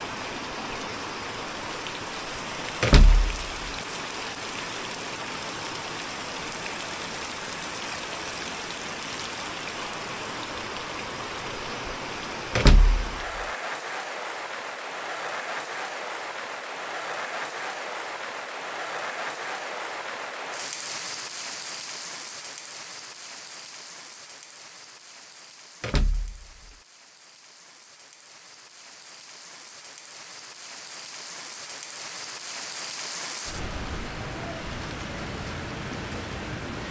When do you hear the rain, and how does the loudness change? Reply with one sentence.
You can hear the rain from 0.0 to 36.8 s, getting quieter then louder.